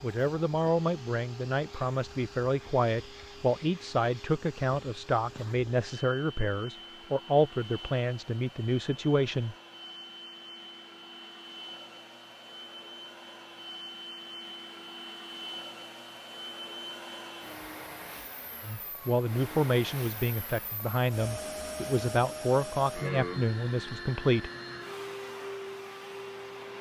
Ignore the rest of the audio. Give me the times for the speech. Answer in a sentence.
You can hear the speech from 0.0 to 9.6 s and from 18.6 to 24.5 s.